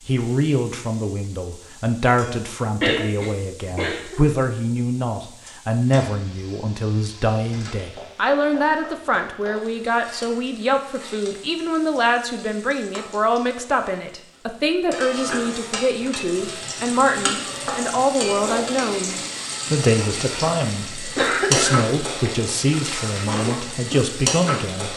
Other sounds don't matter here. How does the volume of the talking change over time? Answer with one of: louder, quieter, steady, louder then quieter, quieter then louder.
steady.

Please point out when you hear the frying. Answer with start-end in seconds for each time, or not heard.
0.0-24.9.